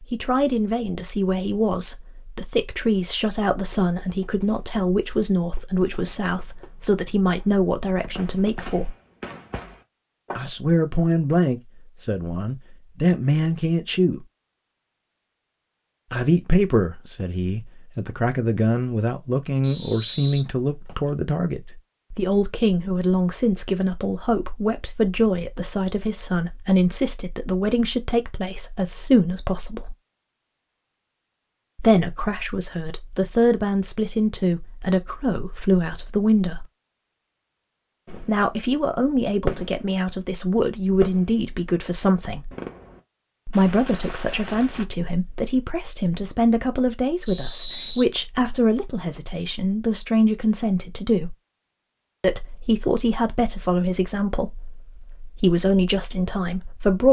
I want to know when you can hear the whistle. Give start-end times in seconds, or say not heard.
19.6-21.1, 47.2-48.0.